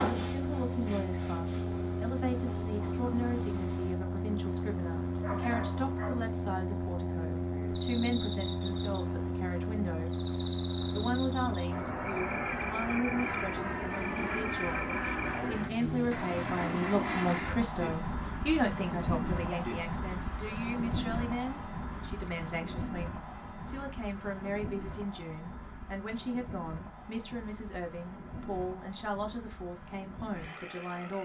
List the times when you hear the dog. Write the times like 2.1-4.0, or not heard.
5.1-6.3.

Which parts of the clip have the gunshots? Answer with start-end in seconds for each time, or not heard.
not heard.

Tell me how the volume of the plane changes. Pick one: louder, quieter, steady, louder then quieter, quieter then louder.
quieter.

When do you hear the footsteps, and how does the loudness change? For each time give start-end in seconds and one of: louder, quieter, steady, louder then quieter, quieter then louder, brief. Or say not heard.
not heard.